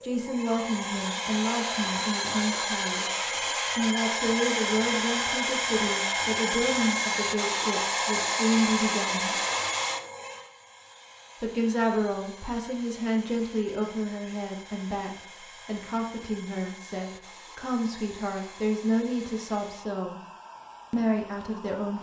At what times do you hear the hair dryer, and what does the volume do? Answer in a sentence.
You can hear the hair dryer from 0.0 to 21.9 s, getting quieter.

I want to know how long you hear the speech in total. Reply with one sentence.
You can hear the speech for 19 seconds altogether.